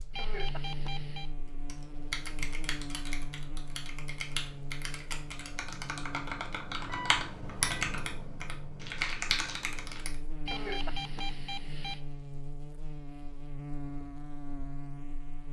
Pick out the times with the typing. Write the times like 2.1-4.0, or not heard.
1.6-10.2.